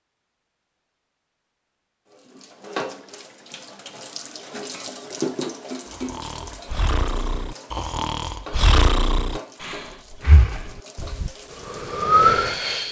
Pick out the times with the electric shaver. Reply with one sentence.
You can't hear the electric shaver here.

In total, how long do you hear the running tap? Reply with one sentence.
You can hear the running tap for 11 seconds altogether.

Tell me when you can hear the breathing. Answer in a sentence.
You can hear the breathing from 5.8 to 12.8 s.